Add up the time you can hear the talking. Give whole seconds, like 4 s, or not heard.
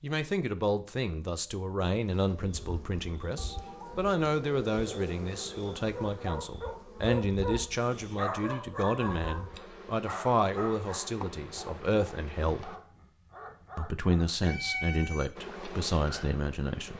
16 s.